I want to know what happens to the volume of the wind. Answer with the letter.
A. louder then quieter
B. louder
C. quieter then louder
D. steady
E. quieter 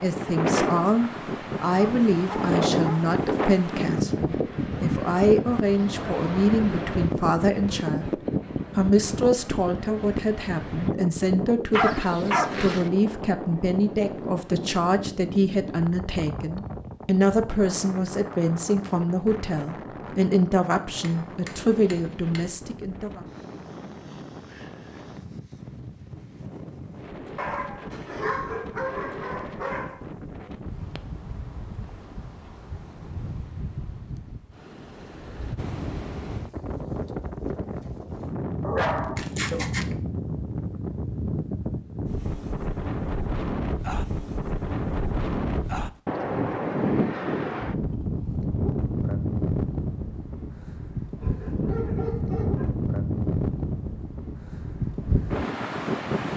C.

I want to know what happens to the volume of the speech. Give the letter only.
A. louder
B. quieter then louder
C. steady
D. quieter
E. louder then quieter
C.